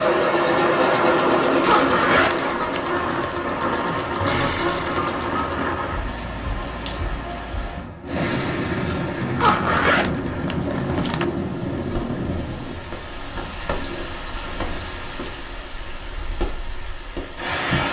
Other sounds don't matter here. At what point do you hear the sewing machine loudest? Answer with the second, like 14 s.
1 s.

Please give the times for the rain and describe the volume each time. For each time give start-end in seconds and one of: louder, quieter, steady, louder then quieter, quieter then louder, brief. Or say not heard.
0.0-17.8 quieter.